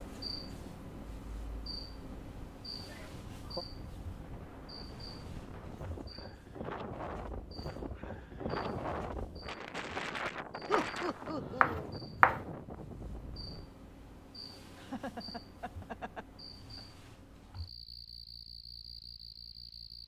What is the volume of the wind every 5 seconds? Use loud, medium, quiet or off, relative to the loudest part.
medium, loud, loud, off.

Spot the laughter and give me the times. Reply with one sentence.
The laughter can be heard from 2.9 to 3.6 s, from 10.7 to 11.9 s and from 14.8 to 16.9 s.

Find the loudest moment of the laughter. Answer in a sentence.
The loudest moment of the laughter is at 11 seconds.